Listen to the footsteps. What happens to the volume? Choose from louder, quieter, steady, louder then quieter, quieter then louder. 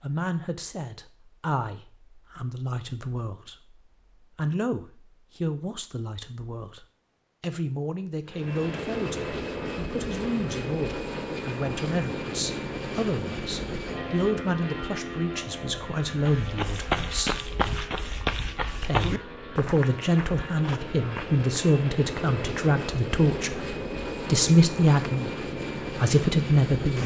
quieter.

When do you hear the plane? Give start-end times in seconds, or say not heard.
8.2-27.0.